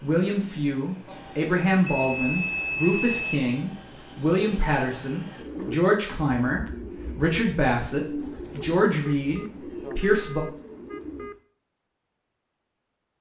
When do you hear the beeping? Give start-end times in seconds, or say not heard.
1.9-3.4, 9.1-11.3.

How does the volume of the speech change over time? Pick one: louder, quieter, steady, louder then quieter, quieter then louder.
steady.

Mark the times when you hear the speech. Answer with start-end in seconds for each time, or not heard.
0.0-10.4.